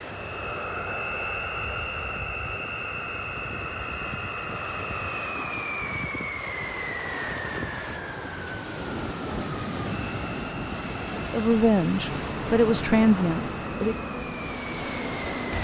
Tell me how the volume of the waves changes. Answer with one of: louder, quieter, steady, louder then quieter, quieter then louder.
louder.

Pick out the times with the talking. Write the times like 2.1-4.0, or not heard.
11.3-13.9.